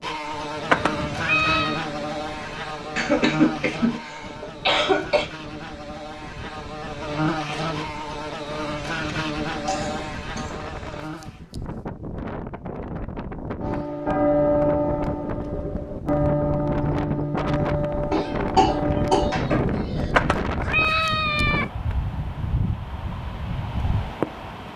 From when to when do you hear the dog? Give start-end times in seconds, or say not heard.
not heard.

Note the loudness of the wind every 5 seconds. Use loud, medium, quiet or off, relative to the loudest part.
quiet, medium, medium, loud, loud.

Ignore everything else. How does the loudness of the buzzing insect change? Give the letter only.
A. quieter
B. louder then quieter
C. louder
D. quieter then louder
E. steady
D.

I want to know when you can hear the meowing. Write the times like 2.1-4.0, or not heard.
0.7-1.9, 20.1-21.6.